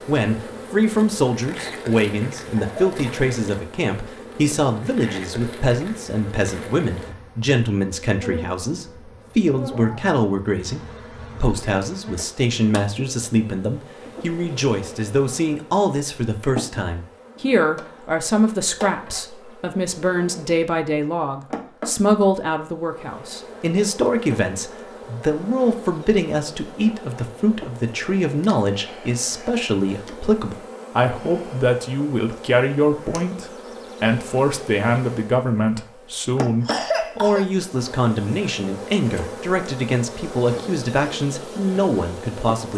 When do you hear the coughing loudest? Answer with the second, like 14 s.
37 s.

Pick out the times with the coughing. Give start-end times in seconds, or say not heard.
2.5-3.0, 36.4-37.5.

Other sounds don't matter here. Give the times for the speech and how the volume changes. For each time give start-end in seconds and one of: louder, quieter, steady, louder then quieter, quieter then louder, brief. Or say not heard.
0.1-42.7 steady.